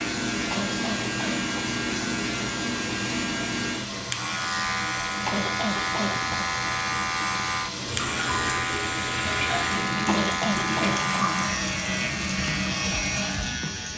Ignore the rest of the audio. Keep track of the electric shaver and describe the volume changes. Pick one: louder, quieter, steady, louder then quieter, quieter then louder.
steady.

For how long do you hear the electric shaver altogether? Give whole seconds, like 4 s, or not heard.
14 s.